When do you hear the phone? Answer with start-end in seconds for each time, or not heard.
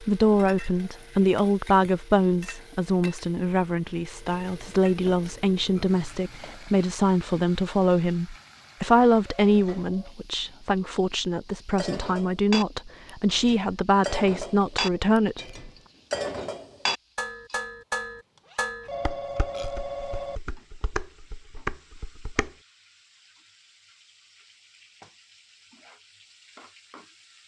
9.3-10.2, 18.9-20.4.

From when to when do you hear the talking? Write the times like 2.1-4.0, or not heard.
0.0-15.7.